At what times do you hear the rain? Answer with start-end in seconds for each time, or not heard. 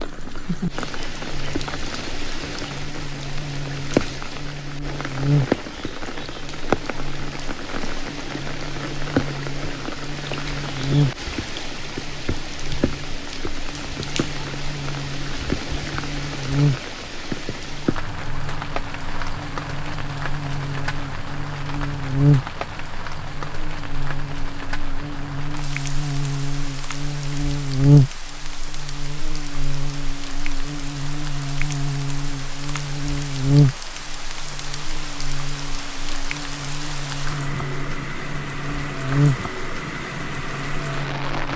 0.0-41.5.